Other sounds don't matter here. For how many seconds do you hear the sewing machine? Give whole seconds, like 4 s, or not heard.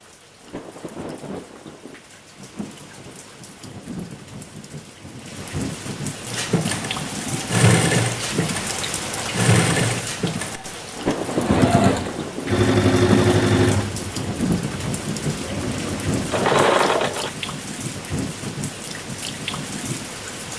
11 s.